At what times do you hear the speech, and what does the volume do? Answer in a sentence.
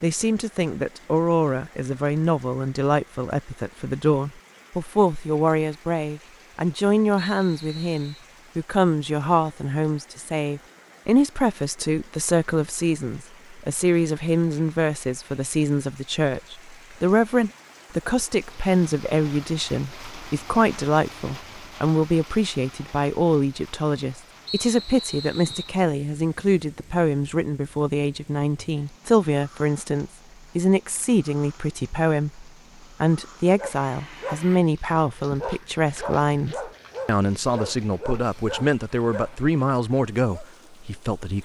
You can hear the speech from 0.0 to 41.3 s, at a steady volume.